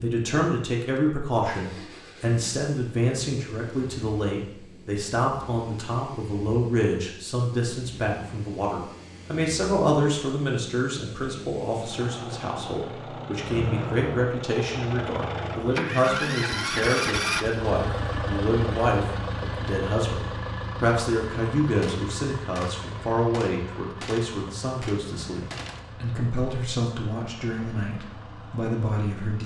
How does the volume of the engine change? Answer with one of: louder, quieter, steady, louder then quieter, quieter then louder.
louder then quieter.